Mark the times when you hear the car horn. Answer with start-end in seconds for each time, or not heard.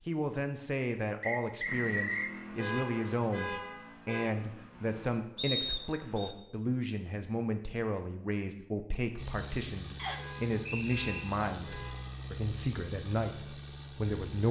2.5-4.3, 10.2-12.2.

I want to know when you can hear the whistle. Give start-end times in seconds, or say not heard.
1.2-2.4, 5.3-6.3, 9.9-11.1.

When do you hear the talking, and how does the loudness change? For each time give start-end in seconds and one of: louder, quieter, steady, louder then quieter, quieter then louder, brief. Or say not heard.
0.1-14.4 steady.